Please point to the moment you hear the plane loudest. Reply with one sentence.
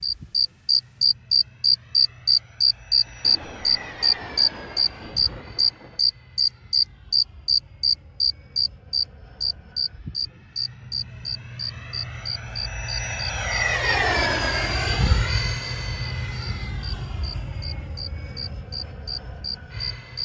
The loudest moment of the plane is at 14 seconds.